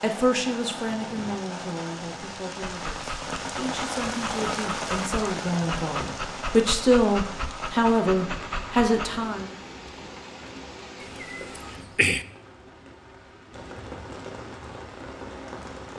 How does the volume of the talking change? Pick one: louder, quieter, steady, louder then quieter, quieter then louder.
quieter then louder.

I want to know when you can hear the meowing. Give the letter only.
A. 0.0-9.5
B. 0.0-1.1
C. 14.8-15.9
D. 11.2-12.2
D.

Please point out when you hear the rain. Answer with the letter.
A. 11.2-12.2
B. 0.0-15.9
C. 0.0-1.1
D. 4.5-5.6
B.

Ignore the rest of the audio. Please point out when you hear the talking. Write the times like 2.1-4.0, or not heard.
0.0-9.5.